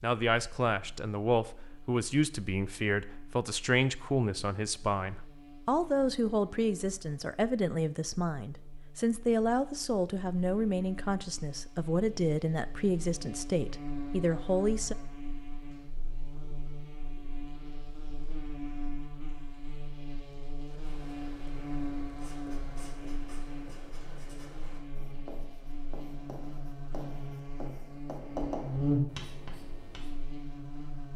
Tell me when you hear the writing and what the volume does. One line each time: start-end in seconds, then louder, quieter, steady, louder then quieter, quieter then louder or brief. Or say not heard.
20.6-30.2 louder.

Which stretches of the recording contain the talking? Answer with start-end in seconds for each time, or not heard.
0.0-14.9.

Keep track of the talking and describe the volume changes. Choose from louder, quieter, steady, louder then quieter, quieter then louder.
steady.